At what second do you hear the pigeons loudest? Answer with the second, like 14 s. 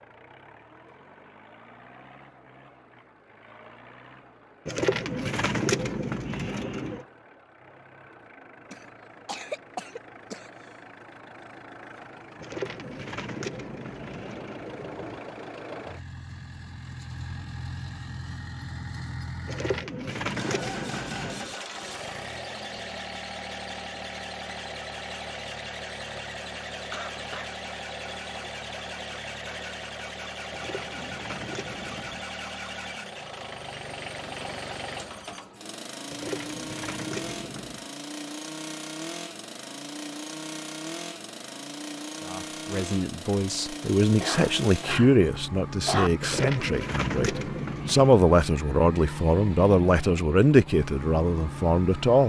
6 s.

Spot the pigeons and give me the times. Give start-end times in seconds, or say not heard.
4.7-7.0, 12.3-15.2, 19.4-21.6, 30.5-32.2, 36.1-37.9, 46.2-48.2.